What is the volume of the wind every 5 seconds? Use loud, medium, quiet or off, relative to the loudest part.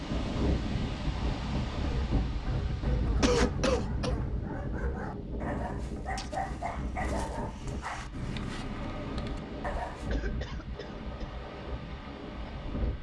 loud, medium, medium.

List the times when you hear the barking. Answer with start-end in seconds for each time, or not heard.
1.7-10.1.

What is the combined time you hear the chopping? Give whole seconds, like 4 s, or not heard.
not heard.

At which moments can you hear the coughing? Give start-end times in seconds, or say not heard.
3.2-4.2, 10.1-11.3.